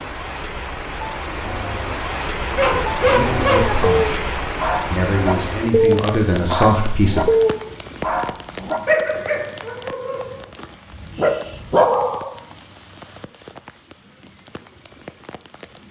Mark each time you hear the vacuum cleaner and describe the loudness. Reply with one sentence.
The vacuum cleaner can't be heard in this clip.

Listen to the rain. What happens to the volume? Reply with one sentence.
The loudness of the rain goes down.